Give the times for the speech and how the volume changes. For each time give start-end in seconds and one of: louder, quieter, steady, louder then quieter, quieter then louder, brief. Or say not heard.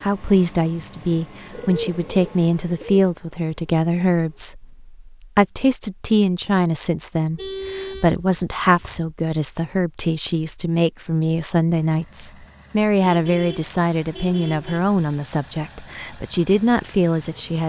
0.0-17.6 steady.